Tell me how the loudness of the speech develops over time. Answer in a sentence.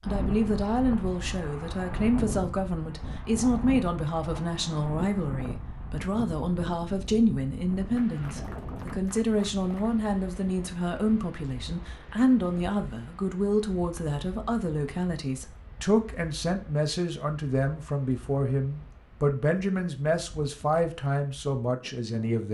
The loudness of the speech stays about the same.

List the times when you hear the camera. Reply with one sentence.
The camera can't be heard in this clip.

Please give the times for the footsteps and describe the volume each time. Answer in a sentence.
You can't hear the footsteps here.